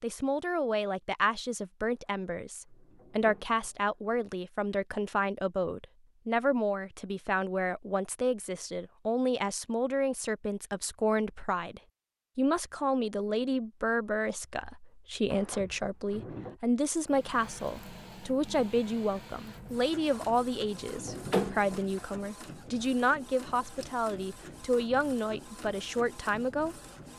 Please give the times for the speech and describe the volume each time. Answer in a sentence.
You can hear the speech from 0.0 to 26.8 s, at a steady volume.